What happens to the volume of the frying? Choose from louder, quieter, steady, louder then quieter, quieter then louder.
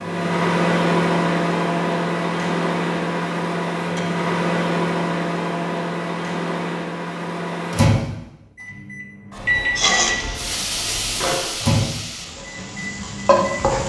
quieter then louder.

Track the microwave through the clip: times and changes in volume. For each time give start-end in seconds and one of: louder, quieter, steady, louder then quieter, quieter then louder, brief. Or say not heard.
0.0-13.8 quieter.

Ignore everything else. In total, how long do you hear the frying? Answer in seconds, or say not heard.
4 s.